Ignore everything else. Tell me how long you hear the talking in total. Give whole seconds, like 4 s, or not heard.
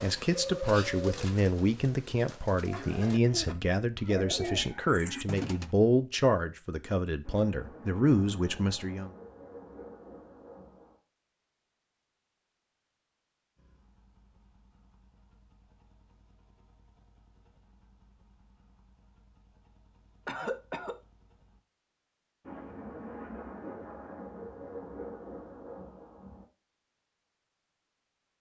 9 s.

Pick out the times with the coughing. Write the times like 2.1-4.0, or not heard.
2.7-3.5, 20.2-20.9.